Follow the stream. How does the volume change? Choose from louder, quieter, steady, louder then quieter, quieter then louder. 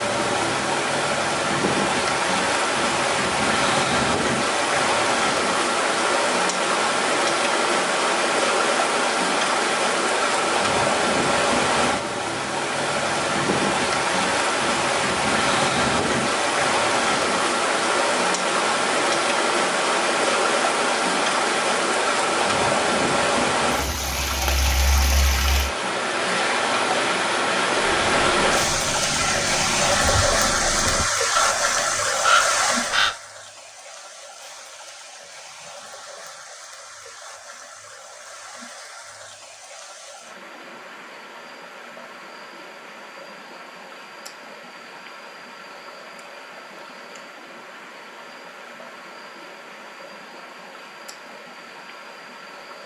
quieter.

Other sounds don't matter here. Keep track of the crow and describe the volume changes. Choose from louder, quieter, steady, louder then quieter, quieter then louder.
louder.